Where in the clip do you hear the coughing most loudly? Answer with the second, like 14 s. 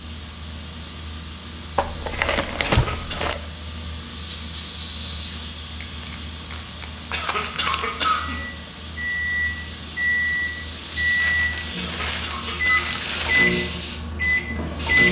8 s.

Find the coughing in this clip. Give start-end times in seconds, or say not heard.
2.6-3.2, 7.1-8.3, 11.8-12.9.